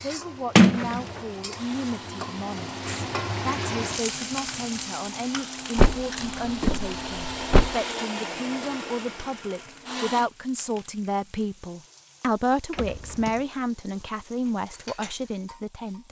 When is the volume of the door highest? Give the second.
1 s.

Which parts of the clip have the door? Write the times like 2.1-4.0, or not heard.
0.6-1.0, 5.8-7.8, 12.8-13.4.